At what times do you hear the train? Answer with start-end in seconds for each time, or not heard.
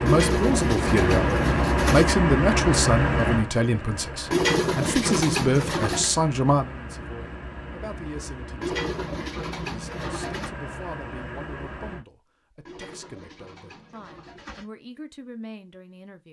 0.0-12.1.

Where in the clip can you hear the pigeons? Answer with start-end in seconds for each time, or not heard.
0.1-2.0, 4.3-6.2, 8.6-10.5, 12.7-14.7.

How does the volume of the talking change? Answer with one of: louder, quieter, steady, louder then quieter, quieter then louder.
quieter.